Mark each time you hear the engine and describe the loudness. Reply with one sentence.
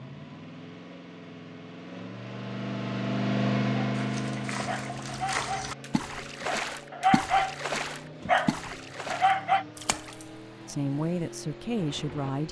You can hear the engine from 0.0 to 12.4 s, getting louder then quieter.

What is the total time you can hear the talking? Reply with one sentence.
You can hear the talking for 2 seconds altogether.